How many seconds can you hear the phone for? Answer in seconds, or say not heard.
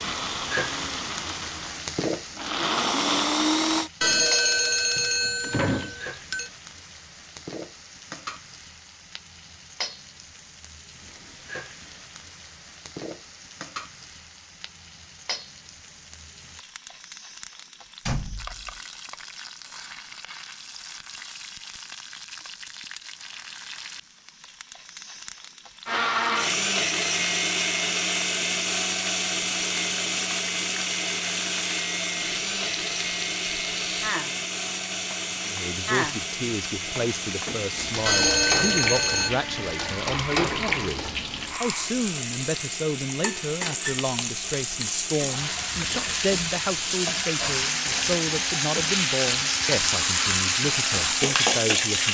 4 s.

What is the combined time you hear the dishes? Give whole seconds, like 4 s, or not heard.
not heard.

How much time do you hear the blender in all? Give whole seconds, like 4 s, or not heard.
30 s.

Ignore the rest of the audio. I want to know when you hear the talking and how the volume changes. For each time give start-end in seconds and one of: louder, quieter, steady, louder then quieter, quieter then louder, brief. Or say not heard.
35.5-52.0 steady.